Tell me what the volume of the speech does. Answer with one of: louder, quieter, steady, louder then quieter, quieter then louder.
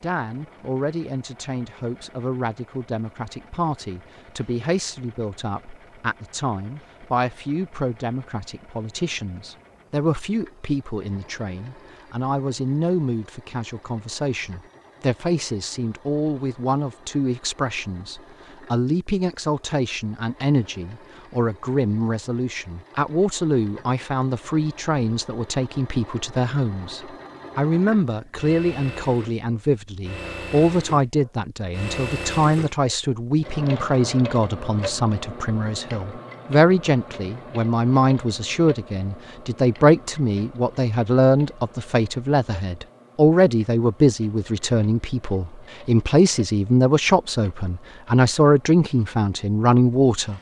louder.